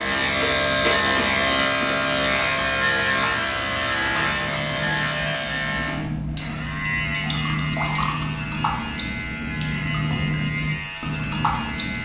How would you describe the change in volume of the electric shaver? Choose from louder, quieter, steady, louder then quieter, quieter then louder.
quieter.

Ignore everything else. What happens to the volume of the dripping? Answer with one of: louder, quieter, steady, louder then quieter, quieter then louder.
louder.